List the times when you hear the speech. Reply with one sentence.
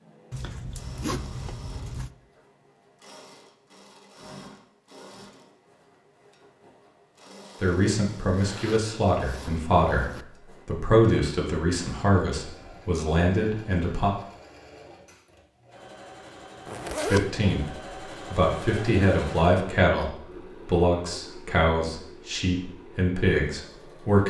You can hear the speech from 7.6 to 14.2 s and from 17.1 to 24.2 s.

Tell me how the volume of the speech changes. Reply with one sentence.
The volume of the speech stays about the same.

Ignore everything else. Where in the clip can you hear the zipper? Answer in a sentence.
You can hear the zipper from 0.3 to 2.1 s, from 8.3 to 10.2 s and from 16.6 to 17.2 s.